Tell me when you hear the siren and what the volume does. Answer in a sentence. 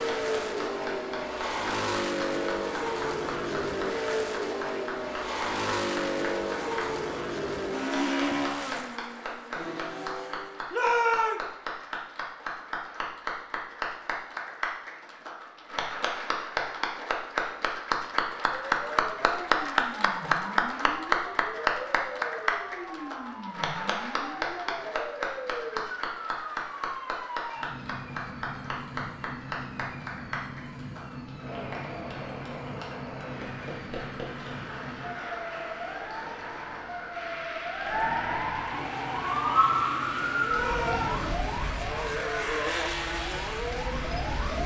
The siren can be heard from 18.6 to 44.6 s, getting louder.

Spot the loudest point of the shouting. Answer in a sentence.
The loudest moment of the shouting is at 11 seconds.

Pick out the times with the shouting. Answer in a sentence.
You can hear the shouting from 10.7 to 11.4 s and from 40.5 to 41.2 s.